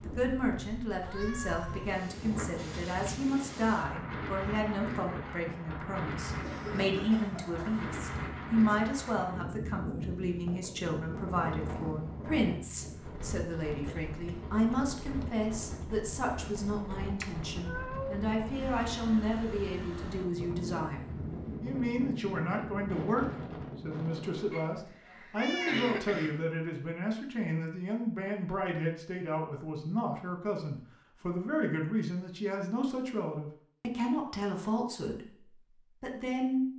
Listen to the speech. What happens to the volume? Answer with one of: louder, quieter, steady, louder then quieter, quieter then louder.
steady.